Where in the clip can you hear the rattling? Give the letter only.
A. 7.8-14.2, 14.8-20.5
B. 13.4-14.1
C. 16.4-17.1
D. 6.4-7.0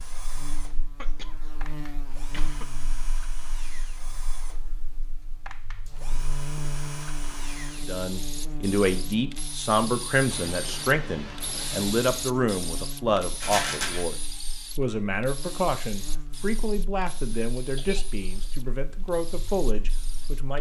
B.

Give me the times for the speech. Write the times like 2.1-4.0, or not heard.
7.8-14.2, 14.8-20.5.